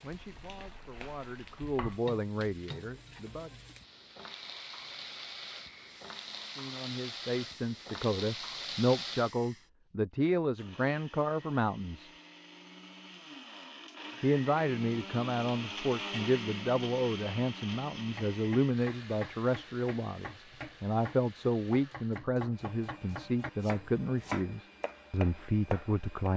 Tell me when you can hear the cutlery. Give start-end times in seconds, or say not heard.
not heard.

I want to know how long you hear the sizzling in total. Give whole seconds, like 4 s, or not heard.
9 s.